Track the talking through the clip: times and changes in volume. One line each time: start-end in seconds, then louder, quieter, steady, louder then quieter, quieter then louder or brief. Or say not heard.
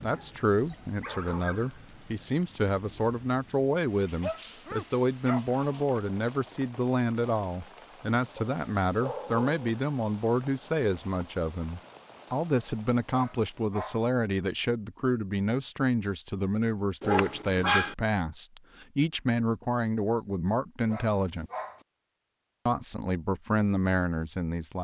0.0-21.5 steady
22.6-24.7 brief.